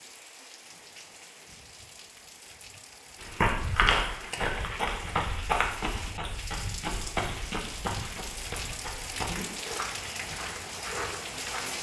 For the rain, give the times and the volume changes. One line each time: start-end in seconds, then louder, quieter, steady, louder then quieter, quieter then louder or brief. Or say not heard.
0.0-11.7 louder.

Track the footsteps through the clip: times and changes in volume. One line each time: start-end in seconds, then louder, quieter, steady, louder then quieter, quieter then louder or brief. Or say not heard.
3.2-11.7 quieter.